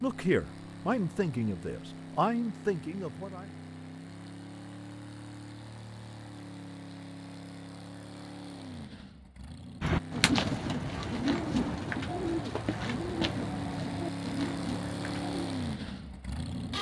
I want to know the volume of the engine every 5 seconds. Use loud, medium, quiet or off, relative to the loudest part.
medium, medium, loud, loud.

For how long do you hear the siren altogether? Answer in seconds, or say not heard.
not heard.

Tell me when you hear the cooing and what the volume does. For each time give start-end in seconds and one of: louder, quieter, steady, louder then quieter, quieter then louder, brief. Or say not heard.
9.8-15.5 quieter.